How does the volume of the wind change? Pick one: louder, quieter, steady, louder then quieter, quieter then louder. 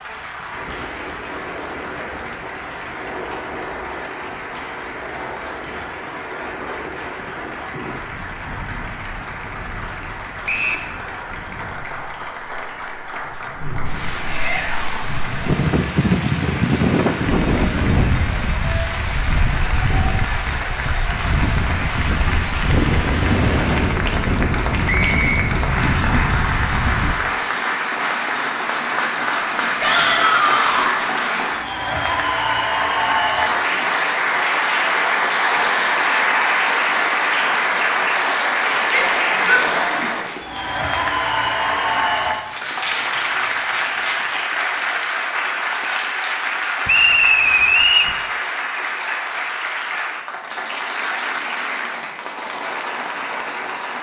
louder.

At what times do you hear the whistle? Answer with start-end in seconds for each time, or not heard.
10.4-10.9, 24.9-25.4, 46.9-48.1.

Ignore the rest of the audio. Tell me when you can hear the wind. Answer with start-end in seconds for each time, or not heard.
0.0-27.1.